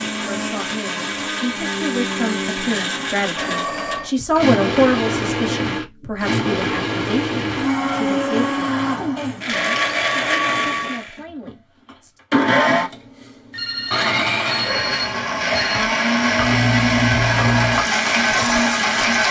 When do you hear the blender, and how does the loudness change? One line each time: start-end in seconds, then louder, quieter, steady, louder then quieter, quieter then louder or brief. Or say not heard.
0.0-19.2 louder.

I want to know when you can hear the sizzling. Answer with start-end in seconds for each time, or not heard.
16.2-19.2.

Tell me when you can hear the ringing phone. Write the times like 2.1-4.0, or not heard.
3.4-4.2, 9.5-11.1, 13.5-15.9.